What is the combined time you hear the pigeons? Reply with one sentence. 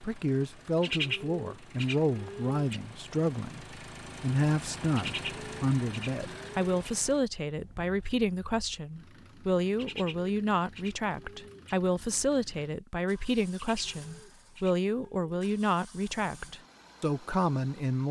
The pigeons can be heard for 8 seconds in total.